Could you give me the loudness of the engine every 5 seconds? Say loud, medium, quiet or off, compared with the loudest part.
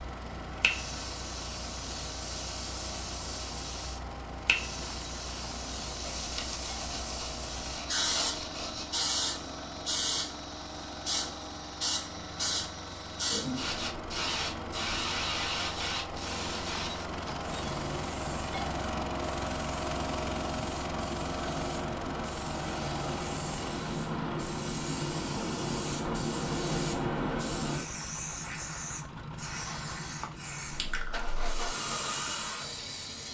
medium, medium, medium, loud, loud, medium, medium.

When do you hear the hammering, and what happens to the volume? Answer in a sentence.
The hammering can't be heard in this clip.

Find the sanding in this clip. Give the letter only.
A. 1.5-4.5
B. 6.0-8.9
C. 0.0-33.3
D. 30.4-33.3
B.